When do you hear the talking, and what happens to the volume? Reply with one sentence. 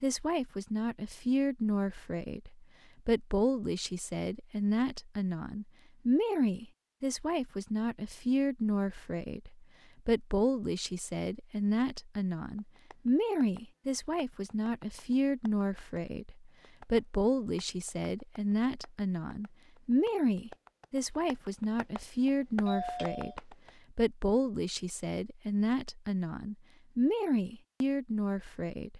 The talking can be heard from 0.0 to 28.9 s, at a steady volume.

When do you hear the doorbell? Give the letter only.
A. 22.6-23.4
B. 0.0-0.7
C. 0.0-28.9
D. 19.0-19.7
A.